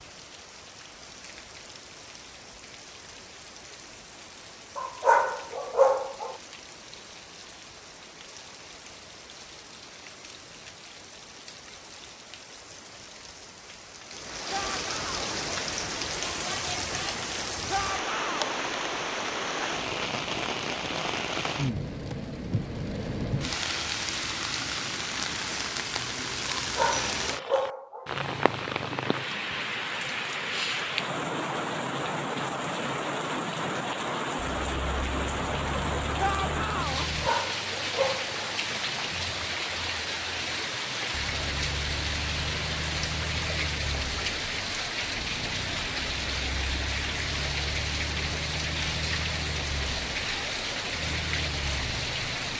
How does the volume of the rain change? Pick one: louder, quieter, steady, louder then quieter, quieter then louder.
louder.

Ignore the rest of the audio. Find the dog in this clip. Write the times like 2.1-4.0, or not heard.
4.8-6.3, 26.6-28.1, 37.0-38.4.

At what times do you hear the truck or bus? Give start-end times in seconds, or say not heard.
34.5-37.3, 41.1-52.4.